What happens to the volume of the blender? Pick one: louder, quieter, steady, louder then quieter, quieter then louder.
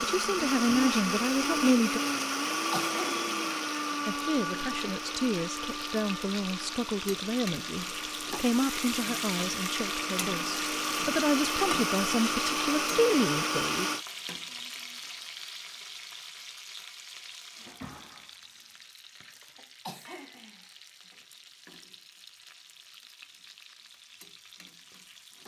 quieter then louder.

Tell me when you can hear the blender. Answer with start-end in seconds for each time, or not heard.
0.0-14.1.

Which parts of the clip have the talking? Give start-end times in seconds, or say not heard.
0.0-2.0, 4.0-13.9.